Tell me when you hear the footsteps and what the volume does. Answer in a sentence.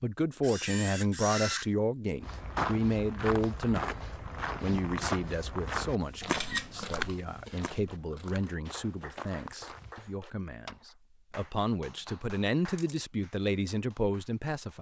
You can hear the footsteps from 2.2 to 10.2 s, getting quieter.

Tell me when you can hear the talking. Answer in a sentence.
You can hear the talking from 0.0 to 4.0 s and from 4.6 to 14.7 s.